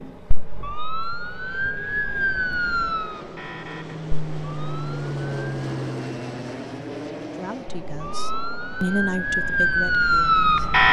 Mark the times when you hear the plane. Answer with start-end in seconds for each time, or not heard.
0.0-10.8.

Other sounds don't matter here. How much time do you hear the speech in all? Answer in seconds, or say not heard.
3 s.